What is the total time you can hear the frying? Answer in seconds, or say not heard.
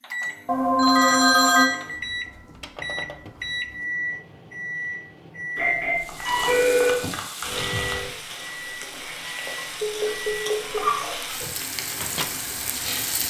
7 s.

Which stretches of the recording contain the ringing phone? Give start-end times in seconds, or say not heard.
0.5-1.7, 5.5-7.1, 9.2-10.9.